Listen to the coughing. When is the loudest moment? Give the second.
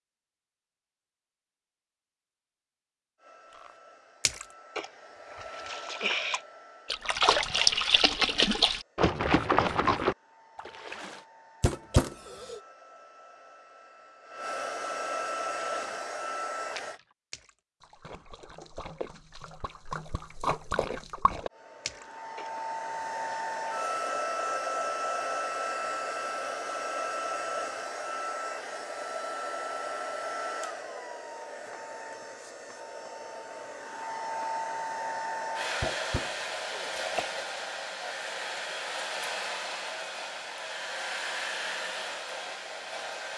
12 s.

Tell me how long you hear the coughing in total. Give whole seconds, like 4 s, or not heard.
3 s.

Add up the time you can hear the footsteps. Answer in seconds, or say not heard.
not heard.